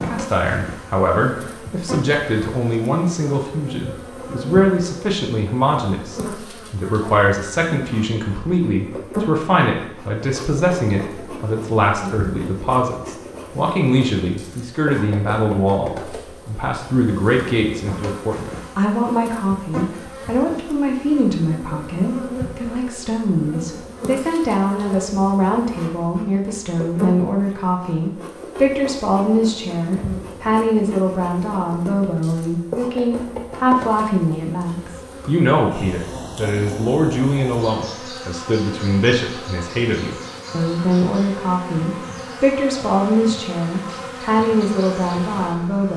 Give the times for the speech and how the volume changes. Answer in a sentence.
You can hear the speech from 0.0 to 45.9 s, at a steady volume.